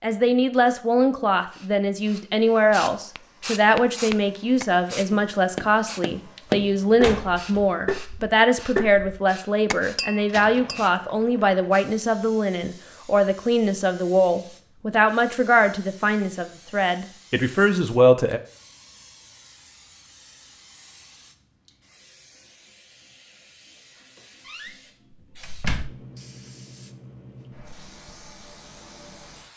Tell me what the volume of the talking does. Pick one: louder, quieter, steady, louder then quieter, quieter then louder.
steady.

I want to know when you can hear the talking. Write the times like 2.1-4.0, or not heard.
0.0-18.4.